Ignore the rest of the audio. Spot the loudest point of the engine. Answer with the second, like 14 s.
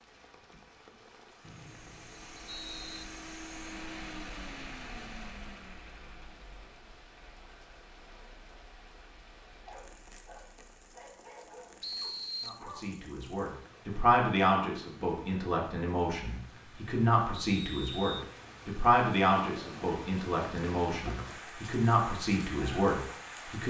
4 s.